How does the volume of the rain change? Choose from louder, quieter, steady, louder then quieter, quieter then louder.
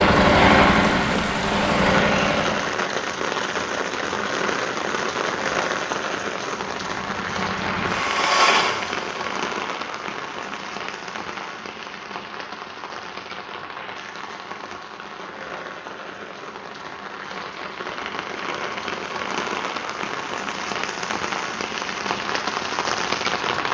quieter then louder.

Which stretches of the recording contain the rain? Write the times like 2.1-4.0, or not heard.
0.0-23.6.